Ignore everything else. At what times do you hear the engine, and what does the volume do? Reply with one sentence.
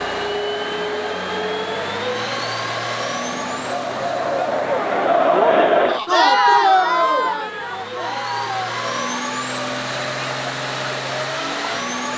The engine can be heard from 0.0 to 12.1 s, getting quieter then louder.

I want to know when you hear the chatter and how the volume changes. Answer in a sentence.
You can hear the chatter from 0.0 to 12.1 s, getting louder then quieter.